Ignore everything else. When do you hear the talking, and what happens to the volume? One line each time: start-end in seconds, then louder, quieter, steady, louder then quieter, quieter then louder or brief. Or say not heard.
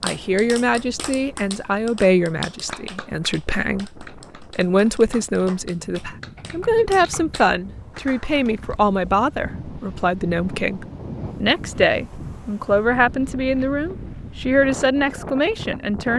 0.0-16.1 steady.